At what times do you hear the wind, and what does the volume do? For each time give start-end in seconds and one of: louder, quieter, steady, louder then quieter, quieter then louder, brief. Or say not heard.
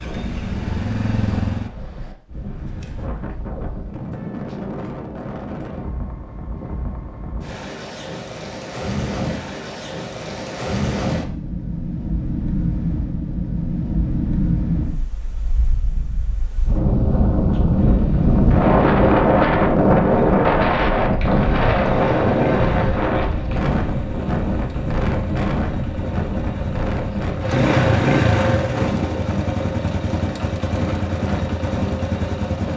0.0-32.7 louder then quieter.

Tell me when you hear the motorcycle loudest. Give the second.
28 s.